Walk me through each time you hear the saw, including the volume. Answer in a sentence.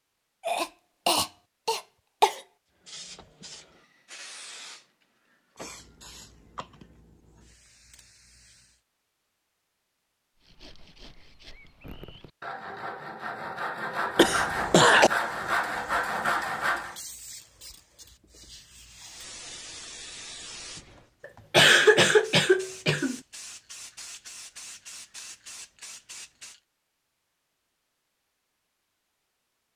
The saw can be heard from 10.3 to 16.9 s, getting louder.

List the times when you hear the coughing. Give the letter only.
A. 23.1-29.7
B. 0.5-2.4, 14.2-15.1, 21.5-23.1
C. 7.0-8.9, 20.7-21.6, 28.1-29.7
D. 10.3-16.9
B.